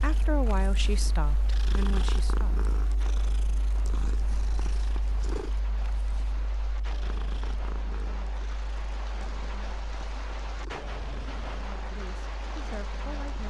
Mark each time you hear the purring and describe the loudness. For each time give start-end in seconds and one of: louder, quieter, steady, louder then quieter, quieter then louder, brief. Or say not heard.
0.0-13.4 quieter.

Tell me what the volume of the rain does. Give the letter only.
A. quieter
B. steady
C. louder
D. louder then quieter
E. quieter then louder
C.